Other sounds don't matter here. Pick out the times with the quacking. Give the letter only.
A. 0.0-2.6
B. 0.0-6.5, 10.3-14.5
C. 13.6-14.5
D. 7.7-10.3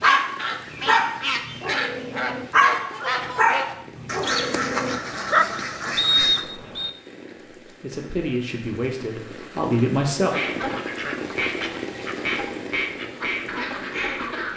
B.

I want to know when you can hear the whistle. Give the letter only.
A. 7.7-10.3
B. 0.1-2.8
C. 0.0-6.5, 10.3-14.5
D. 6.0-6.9
D.